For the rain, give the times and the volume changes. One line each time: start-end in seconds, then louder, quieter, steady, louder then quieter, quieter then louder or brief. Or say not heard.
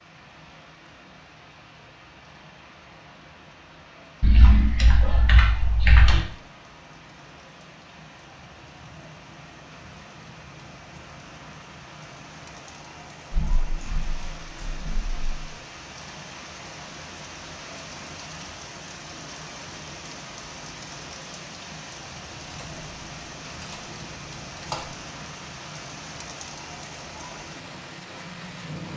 0.0-28.9 louder.